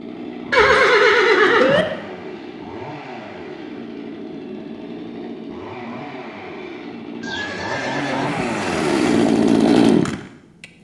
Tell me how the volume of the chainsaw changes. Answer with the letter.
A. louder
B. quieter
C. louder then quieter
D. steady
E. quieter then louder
A.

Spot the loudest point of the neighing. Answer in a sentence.
The volume of the neighing peaks at 1 second.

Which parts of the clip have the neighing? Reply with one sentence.
You can hear the neighing from 0.5 to 1.9 s and from 7.2 to 9.1 s.